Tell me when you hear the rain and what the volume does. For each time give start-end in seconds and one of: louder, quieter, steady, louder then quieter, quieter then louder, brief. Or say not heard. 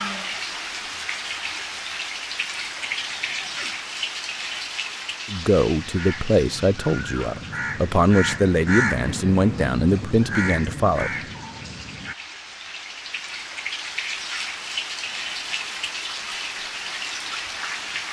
0.0-18.0 quieter then louder.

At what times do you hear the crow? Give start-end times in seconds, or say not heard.
5.7-12.2.